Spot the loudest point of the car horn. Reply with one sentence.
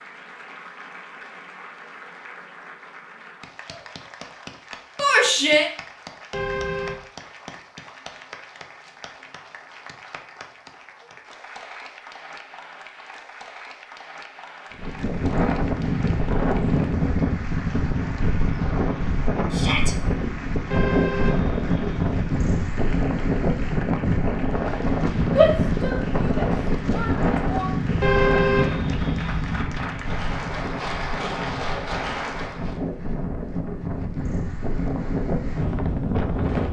The volume of the car horn peaks at 28 seconds.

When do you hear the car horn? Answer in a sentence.
You can hear the car horn from 6.3 to 7.0 s, from 20.7 to 22.7 s and from 28.0 to 29.6 s.